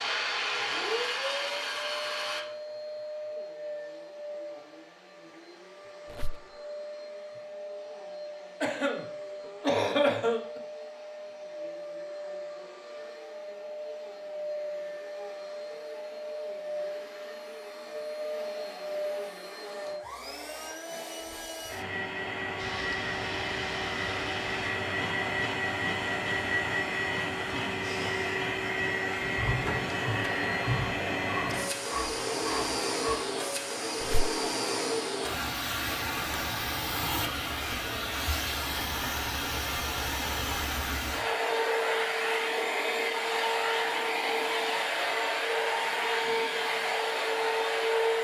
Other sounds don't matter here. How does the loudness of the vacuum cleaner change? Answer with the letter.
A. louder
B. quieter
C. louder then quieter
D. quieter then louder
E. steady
A.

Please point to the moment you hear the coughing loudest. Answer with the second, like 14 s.
10 s.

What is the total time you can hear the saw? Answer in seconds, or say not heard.
13 s.